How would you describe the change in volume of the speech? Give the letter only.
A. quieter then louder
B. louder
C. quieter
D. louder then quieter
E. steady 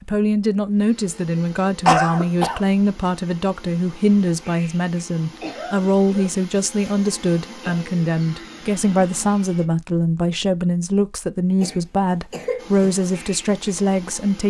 E.